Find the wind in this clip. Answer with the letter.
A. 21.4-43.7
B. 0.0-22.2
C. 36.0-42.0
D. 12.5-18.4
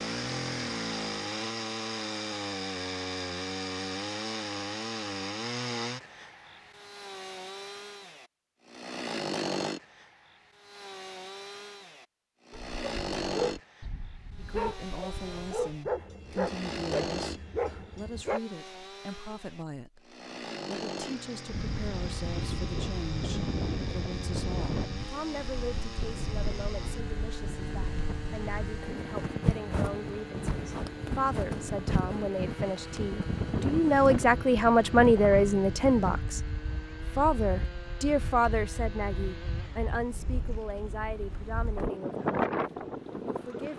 A.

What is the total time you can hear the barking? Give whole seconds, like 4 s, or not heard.
6 s.